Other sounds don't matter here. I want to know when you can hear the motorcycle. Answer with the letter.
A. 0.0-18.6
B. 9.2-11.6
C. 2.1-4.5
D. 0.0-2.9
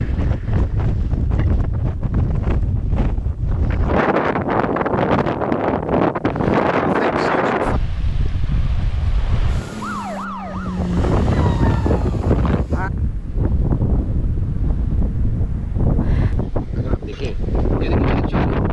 B.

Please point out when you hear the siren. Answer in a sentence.
You can hear the siren from 9.4 to 12.2 s.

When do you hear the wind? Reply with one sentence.
You can hear the wind from 0.0 to 18.6 s.